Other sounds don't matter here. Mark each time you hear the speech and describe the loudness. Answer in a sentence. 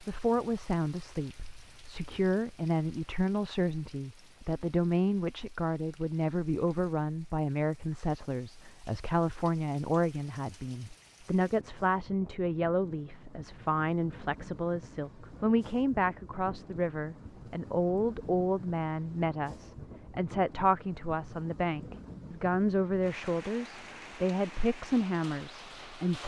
The speech can be heard from 0.0 to 26.2 s, at a steady volume.